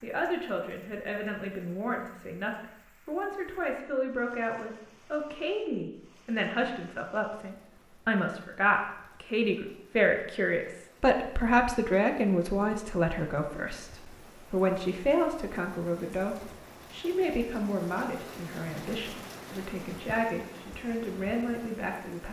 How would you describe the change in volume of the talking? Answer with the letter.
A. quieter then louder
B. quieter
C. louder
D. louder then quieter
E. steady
D.